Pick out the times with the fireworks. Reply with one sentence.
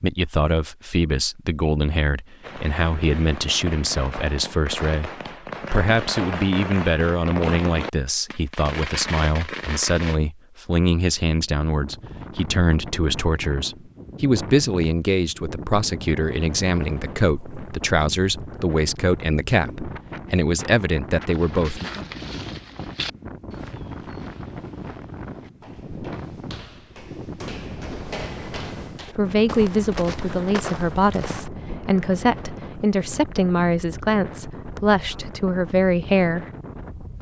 The fireworks can be heard from 2.4 to 10.2 s.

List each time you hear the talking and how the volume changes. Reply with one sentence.
You can hear the talking from 0.0 to 21.9 s, at a steady volume; and from 29.1 to 36.5 s, at a steady volume.